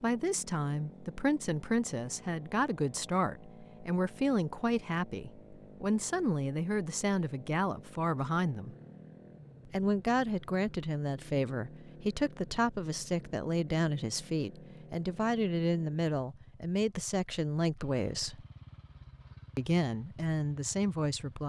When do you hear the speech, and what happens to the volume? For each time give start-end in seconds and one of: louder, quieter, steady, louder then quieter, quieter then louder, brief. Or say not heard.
0.0-8.8 steady
9.7-18.4 steady
19.6-21.4 brief.